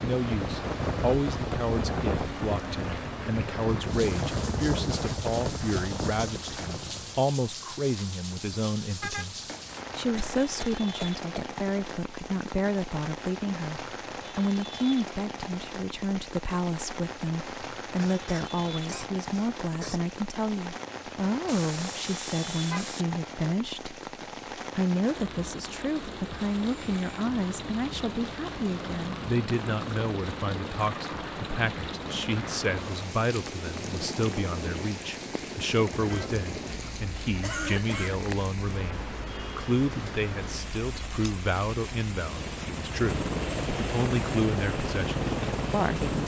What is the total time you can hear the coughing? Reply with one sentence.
The coughing can be heard for 4 seconds in total.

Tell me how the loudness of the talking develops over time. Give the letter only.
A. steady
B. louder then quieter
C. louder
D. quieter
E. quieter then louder
A.